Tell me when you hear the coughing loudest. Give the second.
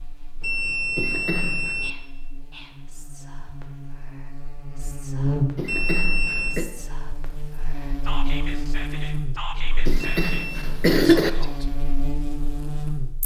11 s.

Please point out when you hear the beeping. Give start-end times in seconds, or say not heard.
0.4-1.9, 5.7-6.6, 10.2-10.7.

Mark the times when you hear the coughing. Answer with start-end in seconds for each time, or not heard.
0.9-1.8, 5.5-6.7, 9.8-11.3.